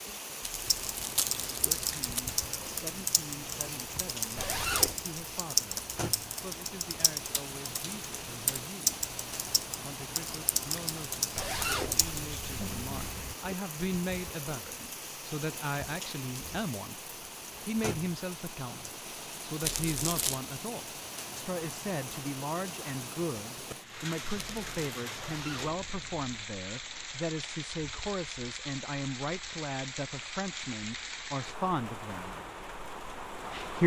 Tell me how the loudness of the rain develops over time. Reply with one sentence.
The volume of the rain stays about the same.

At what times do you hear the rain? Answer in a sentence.
You can hear the rain from 0.0 to 33.8 s.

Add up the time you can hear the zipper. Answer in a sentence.
You can hear the zipper for 4 seconds altogether.